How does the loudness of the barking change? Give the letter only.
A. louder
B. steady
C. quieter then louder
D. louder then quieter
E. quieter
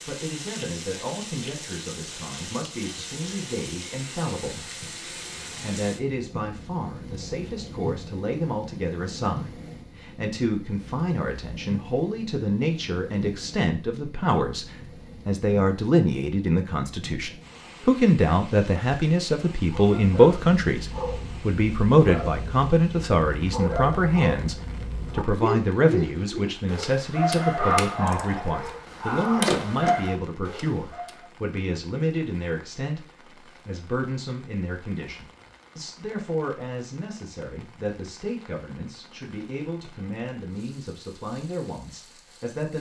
A.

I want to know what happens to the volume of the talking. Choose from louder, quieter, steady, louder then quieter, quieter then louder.
louder then quieter.